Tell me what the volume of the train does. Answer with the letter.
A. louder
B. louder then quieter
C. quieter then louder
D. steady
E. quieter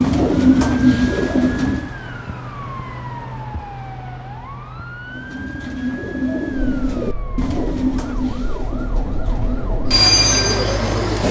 A.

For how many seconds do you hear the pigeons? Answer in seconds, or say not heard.
8 s.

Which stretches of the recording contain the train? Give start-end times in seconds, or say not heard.
6.5-11.2.